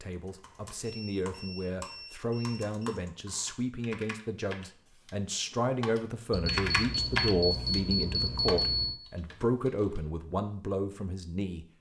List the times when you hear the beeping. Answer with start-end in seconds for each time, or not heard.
0.8-3.0, 6.3-9.0.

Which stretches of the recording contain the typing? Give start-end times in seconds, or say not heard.
0.1-10.0.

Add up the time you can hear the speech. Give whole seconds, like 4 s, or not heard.
12 s.